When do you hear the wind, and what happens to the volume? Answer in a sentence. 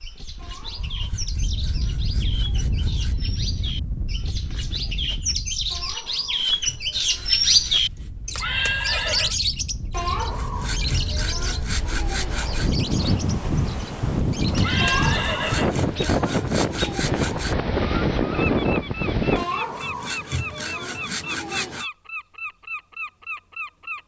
You can hear the wind from 0.0 to 19.4 s, getting quieter then louder.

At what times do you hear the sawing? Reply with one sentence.
The sawing can be heard from 0.3 to 3.2 s, from 5.7 to 7.8 s, from 9.9 to 12.7 s, from 14.8 to 17.6 s and from 19.4 to 21.9 s.